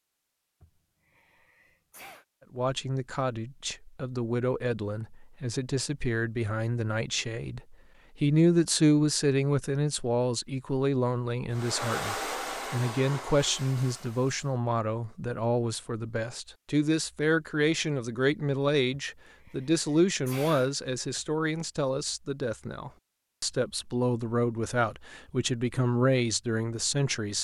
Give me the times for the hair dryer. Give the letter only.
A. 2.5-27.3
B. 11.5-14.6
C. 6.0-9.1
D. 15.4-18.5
B.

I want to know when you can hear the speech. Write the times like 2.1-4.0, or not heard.
2.5-27.3.